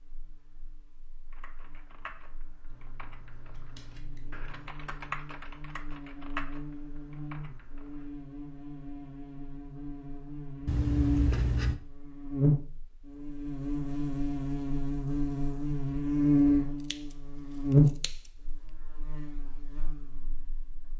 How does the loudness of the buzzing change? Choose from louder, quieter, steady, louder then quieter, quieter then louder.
louder.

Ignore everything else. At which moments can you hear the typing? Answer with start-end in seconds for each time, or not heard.
1.2-8.2.